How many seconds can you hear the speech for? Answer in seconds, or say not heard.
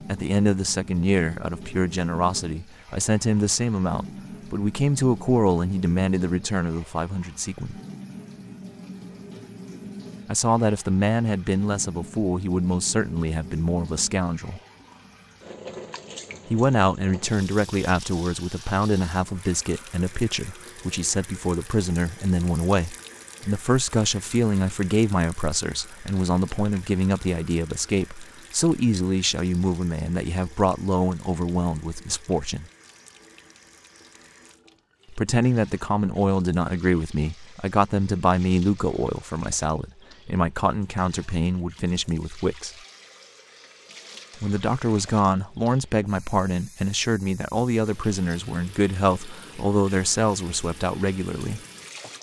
43 s.